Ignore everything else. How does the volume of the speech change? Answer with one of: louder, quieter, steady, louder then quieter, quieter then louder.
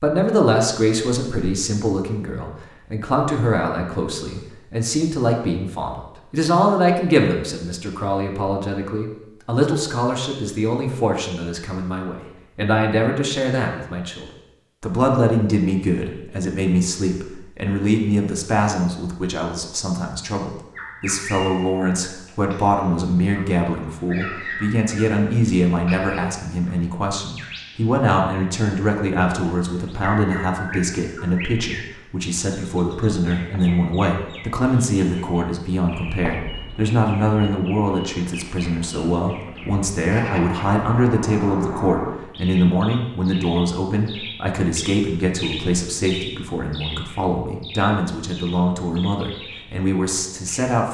steady.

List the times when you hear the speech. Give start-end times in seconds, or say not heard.
0.0-50.8.